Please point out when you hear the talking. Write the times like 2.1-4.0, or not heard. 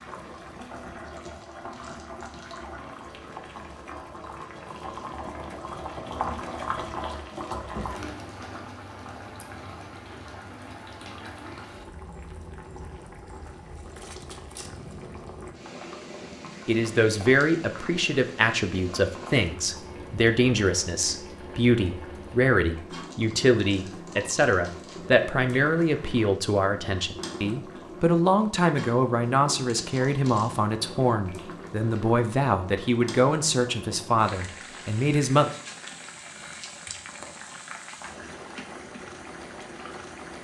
16.6-35.5.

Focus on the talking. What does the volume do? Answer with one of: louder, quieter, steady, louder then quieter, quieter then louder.
steady.